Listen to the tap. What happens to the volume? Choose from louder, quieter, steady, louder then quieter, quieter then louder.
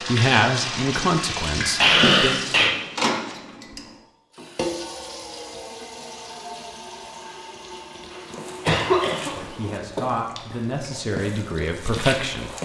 quieter.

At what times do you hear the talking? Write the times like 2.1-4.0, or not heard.
0.1-2.4, 9.3-12.6.